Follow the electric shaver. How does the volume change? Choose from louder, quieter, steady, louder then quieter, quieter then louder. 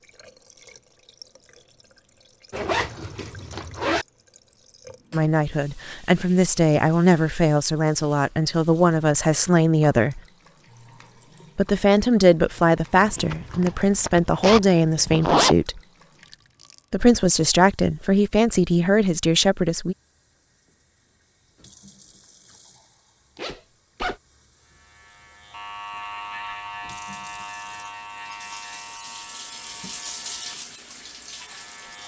quieter.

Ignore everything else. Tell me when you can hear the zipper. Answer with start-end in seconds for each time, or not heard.
2.5-4.0, 12.9-15.6, 23.4-24.1.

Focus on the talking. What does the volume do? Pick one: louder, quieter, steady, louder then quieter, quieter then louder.
steady.